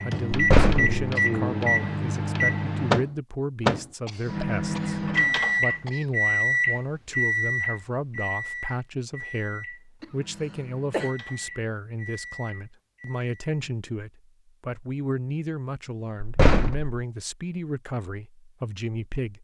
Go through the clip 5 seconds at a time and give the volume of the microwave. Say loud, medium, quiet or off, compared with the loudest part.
loud, loud, quiet, off.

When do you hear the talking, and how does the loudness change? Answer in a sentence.
The talking can be heard from 0.0 to 19.3 s, at a steady volume.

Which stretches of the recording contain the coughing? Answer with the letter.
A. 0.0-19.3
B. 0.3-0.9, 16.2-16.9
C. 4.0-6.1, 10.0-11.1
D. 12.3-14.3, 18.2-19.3
C.